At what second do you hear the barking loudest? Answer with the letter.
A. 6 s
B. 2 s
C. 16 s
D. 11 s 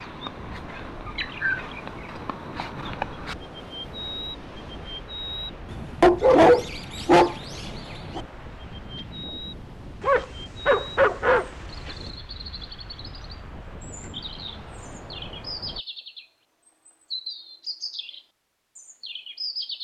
A.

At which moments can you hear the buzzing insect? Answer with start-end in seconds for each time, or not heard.
not heard.